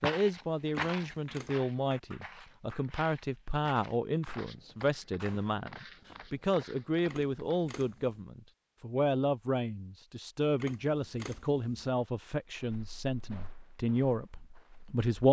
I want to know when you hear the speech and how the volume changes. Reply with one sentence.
You can hear the speech from 0.0 to 15.2 s, at a steady volume.